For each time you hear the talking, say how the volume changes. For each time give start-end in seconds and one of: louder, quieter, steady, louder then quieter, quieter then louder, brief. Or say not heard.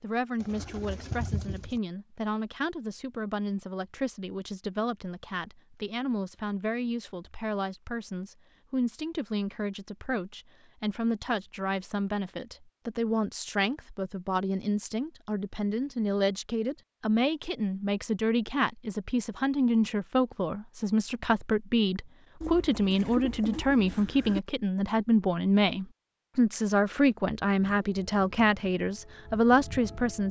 0.0-30.2 louder.